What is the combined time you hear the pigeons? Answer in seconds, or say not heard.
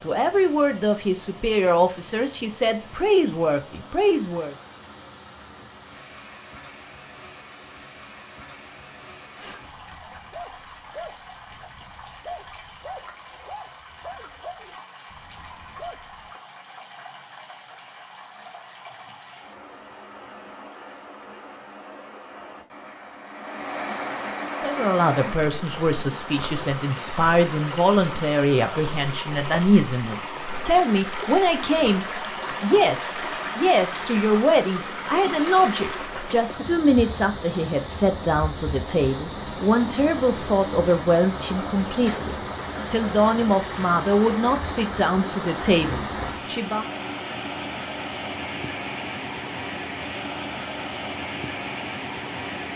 not heard.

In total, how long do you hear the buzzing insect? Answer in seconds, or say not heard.
not heard.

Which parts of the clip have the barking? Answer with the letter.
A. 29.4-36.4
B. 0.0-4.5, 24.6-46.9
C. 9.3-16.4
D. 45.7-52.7
C.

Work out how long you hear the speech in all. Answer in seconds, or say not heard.
27 s.